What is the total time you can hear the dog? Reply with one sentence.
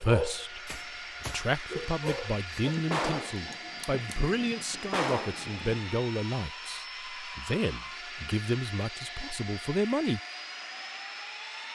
The dog can be heard for 3 seconds in total.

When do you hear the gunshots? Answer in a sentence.
The gunshots can be heard from 2.6 to 5.8 s.